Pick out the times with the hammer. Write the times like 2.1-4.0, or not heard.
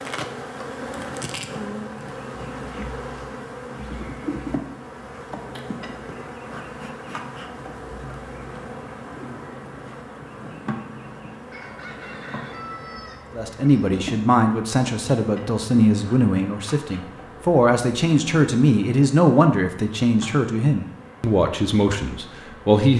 not heard.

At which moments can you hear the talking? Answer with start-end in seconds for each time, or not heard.
13.3-22.9.